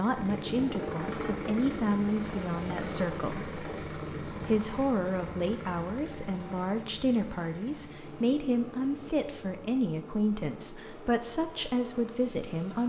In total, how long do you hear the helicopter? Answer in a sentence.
You can hear the helicopter for 13 seconds altogether.